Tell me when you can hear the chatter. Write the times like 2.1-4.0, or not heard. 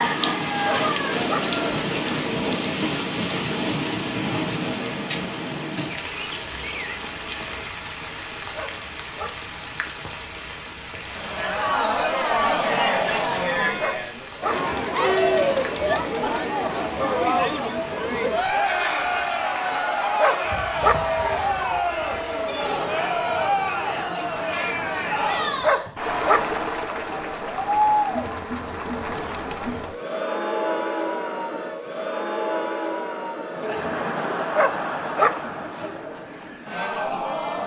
11.1-37.6.